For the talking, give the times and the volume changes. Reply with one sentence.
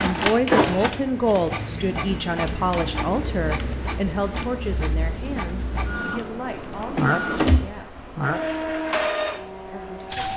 You can hear the talking from 0.0 to 8.2 s, getting quieter; and briefly from 9.7 to 10.3 s.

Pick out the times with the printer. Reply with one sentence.
You can hear the printer from 0.0 to 10.3 s.